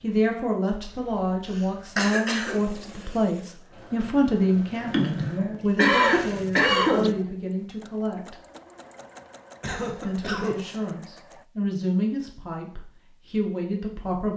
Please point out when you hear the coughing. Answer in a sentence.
The coughing can be heard from 1.6 to 2.6 s, from 4.8 to 7.2 s and from 9.6 to 10.8 s.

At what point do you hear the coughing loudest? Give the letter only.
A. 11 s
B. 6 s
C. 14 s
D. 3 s
B.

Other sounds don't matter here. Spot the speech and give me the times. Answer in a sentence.
The speech can be heard from 0.0 to 8.3 s and from 10.0 to 14.3 s.